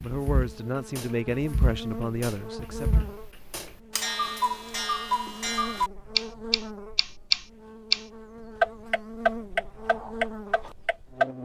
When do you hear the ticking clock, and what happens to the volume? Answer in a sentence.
The ticking clock can be heard from 0.0 to 8.0 s, getting louder; and briefly from 8.6 to 11.3 s.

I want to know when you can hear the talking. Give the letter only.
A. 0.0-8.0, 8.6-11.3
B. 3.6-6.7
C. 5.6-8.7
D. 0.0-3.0
D.